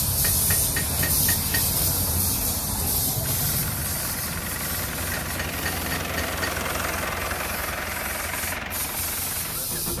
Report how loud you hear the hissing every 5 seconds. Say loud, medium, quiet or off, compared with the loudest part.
loud, medium.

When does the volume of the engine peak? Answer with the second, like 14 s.
7 s.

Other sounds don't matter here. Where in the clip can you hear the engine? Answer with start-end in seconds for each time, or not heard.
3.2-9.9.